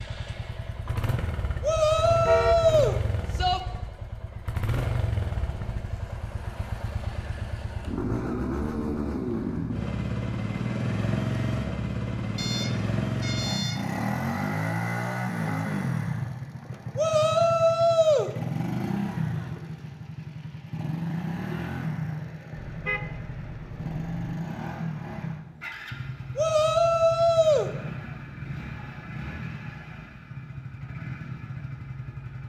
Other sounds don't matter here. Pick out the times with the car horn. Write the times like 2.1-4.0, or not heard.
2.1-2.9, 12.3-13.9, 22.6-24.4.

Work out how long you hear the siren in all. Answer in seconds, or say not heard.
not heard.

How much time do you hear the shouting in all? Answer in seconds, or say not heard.
5 s.